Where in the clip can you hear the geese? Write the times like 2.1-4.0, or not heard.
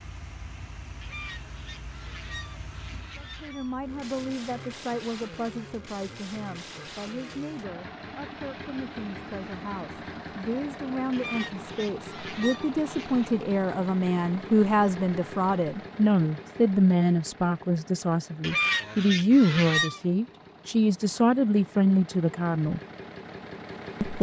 1.0-3.8, 11.1-13.3, 18.4-20.0.